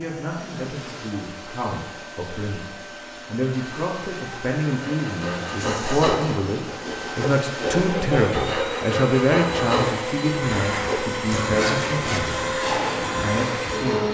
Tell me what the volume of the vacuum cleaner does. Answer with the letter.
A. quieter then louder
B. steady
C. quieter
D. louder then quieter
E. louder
E.